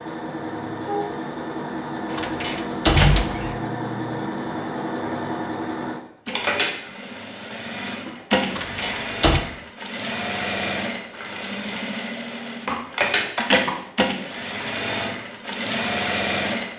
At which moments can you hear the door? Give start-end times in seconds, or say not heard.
2.1-3.5, 8.4-9.4.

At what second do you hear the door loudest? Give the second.
3 s.